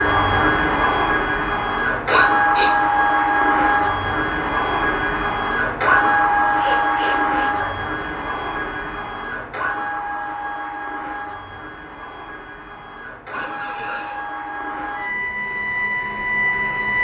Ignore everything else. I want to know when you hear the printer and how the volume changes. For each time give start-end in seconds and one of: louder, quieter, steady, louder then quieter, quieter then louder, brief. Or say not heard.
0.0-17.0 quieter then louder.